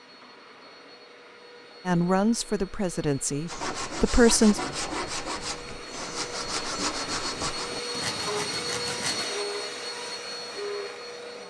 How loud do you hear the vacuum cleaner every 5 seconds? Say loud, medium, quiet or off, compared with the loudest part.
quiet, loud, loud.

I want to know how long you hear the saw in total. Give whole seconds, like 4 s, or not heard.
6 s.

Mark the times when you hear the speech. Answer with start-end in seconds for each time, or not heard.
1.9-4.6.